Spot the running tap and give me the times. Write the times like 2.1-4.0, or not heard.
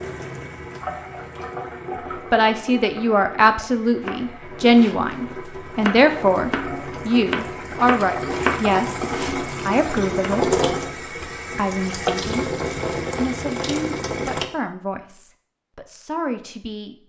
0.0-14.5.